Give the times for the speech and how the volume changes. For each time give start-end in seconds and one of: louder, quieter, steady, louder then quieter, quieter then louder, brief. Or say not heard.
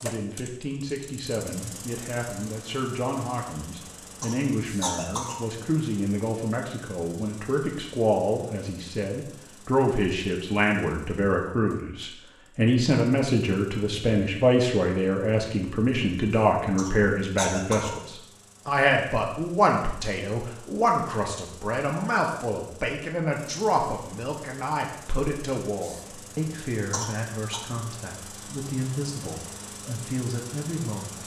0.0-31.2 louder then quieter.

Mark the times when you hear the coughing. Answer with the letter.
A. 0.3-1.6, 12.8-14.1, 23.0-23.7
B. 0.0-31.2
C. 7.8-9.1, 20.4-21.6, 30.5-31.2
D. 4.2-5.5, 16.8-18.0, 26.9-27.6
D.